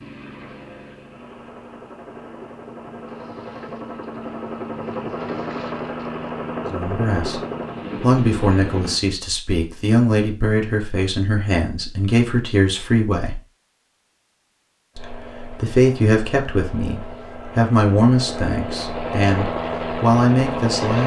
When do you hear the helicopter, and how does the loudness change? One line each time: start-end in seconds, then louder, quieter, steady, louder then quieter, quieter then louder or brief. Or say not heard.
0.0-9.0 louder
14.9-21.0 louder.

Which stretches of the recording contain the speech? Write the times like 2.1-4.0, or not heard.
6.7-7.4, 8.0-13.4, 14.9-21.0.